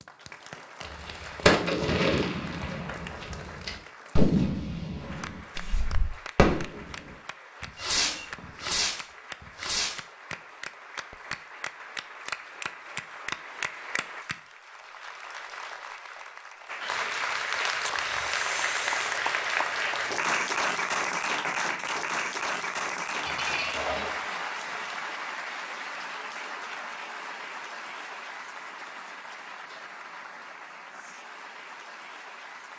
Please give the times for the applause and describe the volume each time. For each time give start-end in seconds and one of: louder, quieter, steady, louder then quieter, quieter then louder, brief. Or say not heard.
0.0-32.7 louder then quieter.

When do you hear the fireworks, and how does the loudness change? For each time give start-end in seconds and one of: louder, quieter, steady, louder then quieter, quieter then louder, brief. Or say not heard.
0.8-9.0 quieter then louder
9.6-10.0 brief.